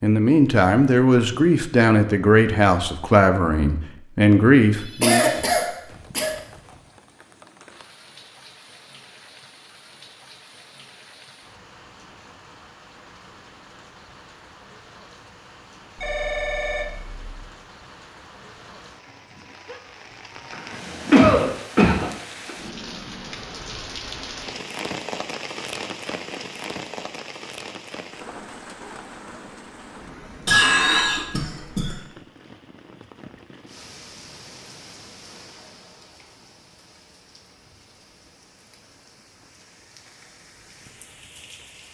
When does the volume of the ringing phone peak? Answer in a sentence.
The volume of the ringing phone peaks at 31 seconds.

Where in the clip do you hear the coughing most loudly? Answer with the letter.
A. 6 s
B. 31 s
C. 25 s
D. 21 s
D.